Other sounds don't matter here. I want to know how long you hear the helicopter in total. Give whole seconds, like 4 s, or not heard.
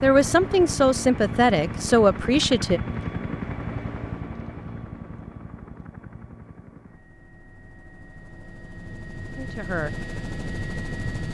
11 s.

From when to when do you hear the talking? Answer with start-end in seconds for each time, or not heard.
0.0-2.8, 9.3-9.9.